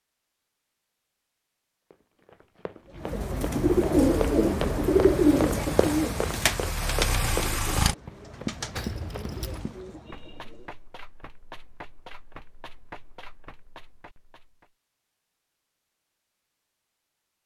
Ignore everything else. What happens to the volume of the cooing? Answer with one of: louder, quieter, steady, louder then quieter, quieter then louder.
quieter.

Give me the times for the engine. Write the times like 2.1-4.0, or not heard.
3.9-8.0.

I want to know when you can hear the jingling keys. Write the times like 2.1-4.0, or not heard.
8.8-9.7.